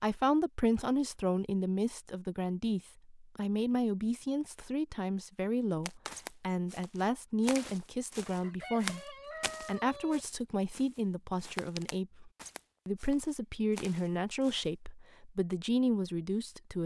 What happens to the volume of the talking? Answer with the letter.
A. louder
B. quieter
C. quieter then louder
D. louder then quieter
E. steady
E.